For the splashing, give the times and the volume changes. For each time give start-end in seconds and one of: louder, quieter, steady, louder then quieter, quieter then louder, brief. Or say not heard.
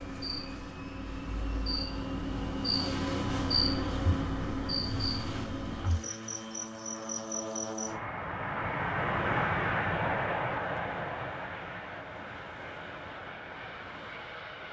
not heard.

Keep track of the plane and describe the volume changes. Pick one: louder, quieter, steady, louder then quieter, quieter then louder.
louder then quieter.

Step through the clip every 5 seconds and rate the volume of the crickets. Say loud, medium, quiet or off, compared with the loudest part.
loud, medium, off.